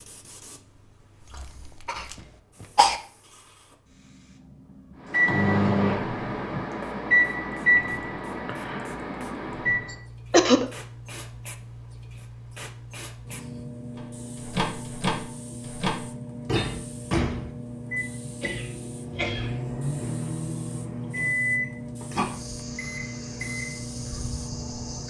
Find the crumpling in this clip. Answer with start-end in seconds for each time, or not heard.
1.2-2.2.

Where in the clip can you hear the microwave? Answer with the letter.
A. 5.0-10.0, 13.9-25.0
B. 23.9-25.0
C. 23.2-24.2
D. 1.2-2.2
A.